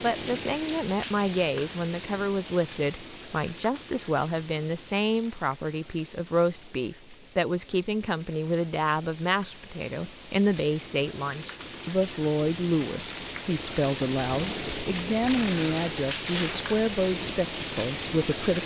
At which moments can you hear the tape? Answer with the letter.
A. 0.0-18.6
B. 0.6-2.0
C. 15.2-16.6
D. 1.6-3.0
C.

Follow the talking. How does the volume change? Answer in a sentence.
The volume of the talking stays about the same.